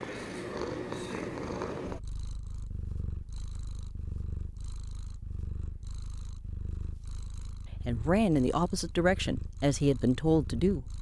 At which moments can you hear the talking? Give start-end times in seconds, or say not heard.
7.8-10.8.